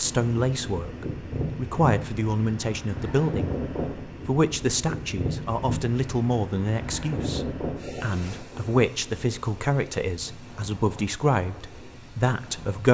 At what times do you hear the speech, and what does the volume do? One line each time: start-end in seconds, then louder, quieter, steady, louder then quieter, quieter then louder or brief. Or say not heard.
0.0-12.8 steady.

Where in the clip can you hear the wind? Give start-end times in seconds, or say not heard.
0.0-12.8.